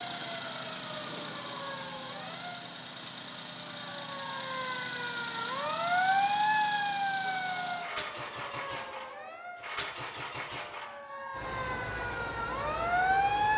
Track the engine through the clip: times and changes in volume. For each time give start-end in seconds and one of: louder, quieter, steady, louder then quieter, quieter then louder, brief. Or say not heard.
0.0-13.5 steady.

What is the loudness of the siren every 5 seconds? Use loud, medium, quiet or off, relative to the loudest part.
medium, loud, loud.